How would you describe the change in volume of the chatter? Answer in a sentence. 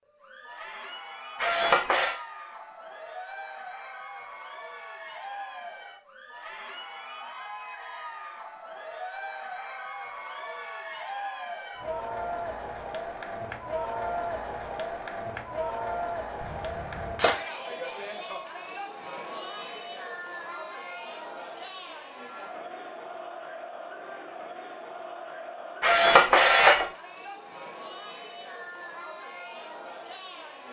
The loudness of the chatter goes up, then down.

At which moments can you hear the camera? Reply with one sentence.
You can hear the camera from 1.4 to 2.1 s, from 16.4 to 17.4 s and from 25.8 to 26.9 s.